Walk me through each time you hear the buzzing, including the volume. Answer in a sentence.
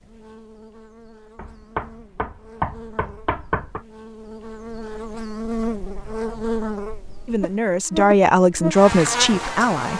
You can hear the buzzing from 0.0 to 9.9 s, getting louder.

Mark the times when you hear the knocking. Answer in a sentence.
You can hear the knocking from 1.4 to 3.8 s.